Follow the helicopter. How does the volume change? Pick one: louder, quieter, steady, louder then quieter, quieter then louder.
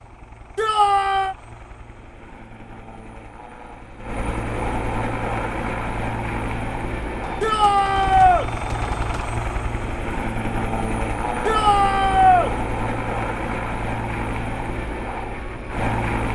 louder.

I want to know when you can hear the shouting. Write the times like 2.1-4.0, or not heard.
0.6-1.4, 7.4-8.4, 11.4-12.5.